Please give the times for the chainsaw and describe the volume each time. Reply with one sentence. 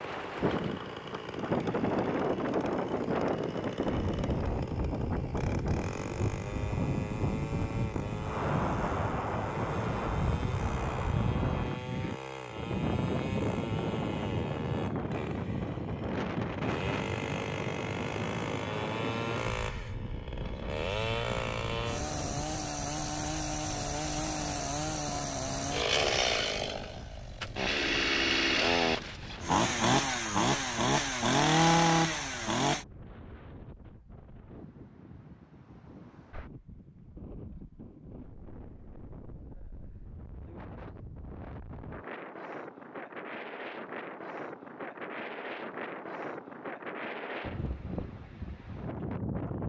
The chainsaw can be heard from 0.0 to 32.9 s, getting louder.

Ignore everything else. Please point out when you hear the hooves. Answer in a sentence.
The hooves can't be heard in this clip.